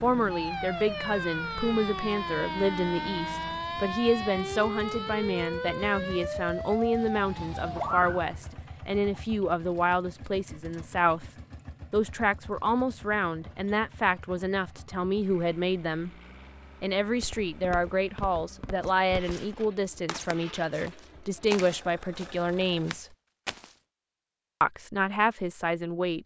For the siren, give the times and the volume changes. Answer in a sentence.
You can hear the siren from 0.0 to 8.4 s, at a steady volume.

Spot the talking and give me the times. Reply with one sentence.
The talking can be heard from 0.0 to 11.2 s, from 11.9 to 16.1 s, from 16.8 to 23.1 s and from 24.6 to 26.2 s.